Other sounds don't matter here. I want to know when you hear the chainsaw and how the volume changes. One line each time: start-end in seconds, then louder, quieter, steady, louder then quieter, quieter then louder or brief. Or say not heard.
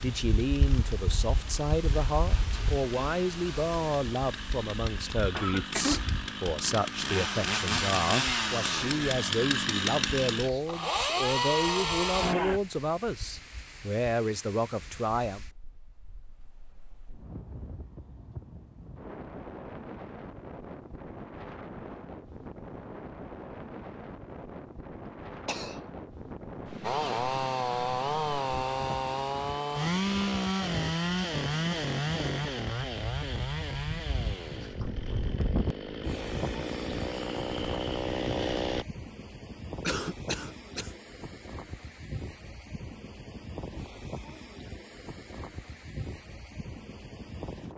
0.0-12.6 louder
26.8-38.9 quieter then louder.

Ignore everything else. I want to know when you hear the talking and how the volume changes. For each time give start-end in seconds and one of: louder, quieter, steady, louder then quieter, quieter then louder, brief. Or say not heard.
0.0-15.4 steady.